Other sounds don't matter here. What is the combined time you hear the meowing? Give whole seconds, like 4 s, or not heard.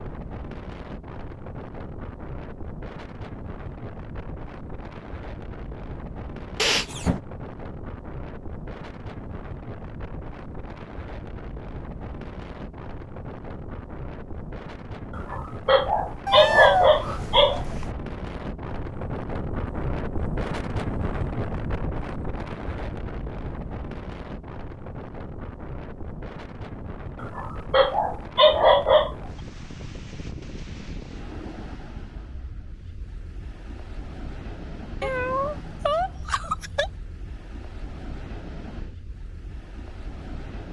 4 s.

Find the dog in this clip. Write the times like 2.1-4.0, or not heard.
15.2-17.6, 27.2-29.1.